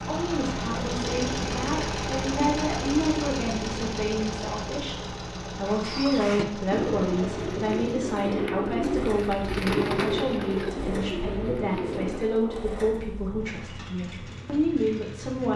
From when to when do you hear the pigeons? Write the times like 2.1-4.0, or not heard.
5.7-12.5.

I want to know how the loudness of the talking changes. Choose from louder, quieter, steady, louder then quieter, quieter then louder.
steady.